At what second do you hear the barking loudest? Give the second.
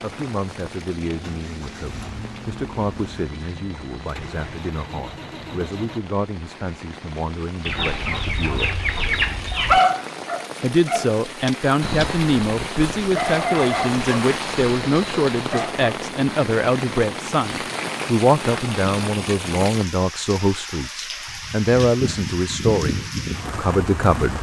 10 s.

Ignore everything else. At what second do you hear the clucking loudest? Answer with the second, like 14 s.
9 s.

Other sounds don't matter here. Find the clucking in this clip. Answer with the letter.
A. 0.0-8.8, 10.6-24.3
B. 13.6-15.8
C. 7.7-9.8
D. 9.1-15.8
C.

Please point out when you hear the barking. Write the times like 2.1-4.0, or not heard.
9.1-15.8.